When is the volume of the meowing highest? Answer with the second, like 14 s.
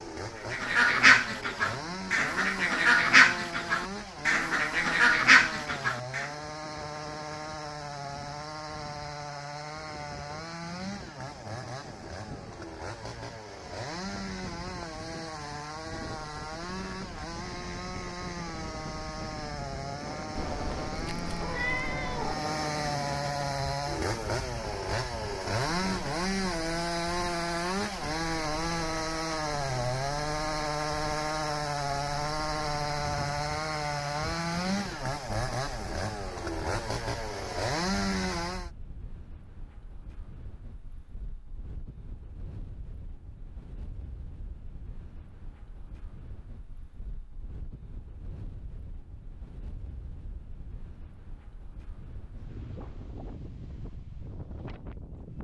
22 s.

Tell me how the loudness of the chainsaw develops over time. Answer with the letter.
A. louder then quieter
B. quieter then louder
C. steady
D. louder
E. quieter
D.